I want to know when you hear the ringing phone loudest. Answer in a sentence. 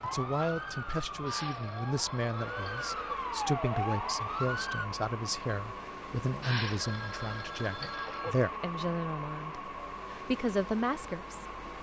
The loudest moment of the ringing phone is at 7 seconds.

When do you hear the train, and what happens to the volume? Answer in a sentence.
The train can be heard from 0.0 to 11.7 s, at a steady volume.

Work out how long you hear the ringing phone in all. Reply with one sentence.
The ringing phone can be heard for 4 seconds in total.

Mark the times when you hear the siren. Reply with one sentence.
You can hear the siren from 0.0 to 4.8 s.